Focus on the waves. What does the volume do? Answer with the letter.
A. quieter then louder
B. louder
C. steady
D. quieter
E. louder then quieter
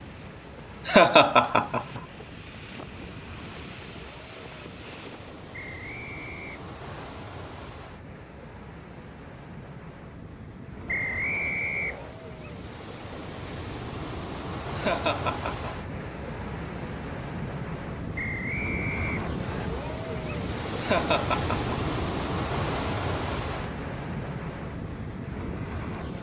B.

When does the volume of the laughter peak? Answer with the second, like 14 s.
1 s.